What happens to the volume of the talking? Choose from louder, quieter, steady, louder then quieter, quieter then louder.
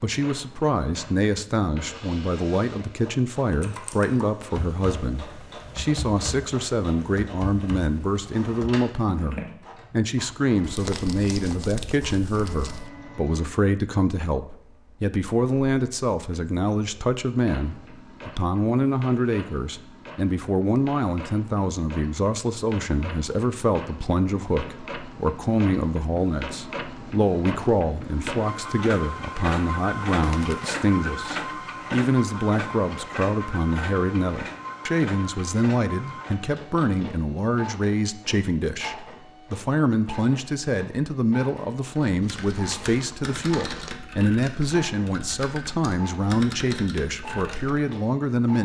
steady.